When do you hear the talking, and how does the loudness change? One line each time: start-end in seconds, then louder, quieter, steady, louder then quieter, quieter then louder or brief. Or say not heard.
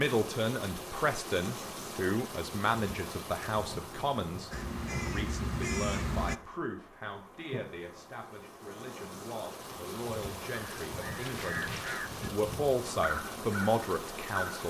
0.0-11.7 quieter
12.3-14.6 brief.